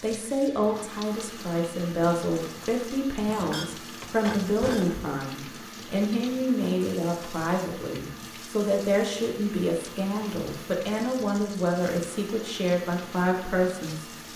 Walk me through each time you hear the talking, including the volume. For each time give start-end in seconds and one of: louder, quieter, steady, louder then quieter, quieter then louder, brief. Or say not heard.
0.0-14.3 steady.